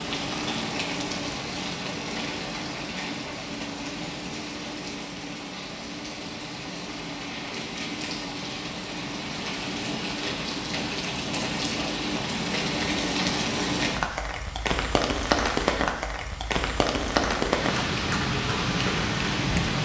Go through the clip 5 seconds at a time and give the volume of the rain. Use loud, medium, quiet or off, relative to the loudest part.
medium, medium, loud, loud.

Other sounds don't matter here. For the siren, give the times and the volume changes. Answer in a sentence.
The siren can't be heard in this clip.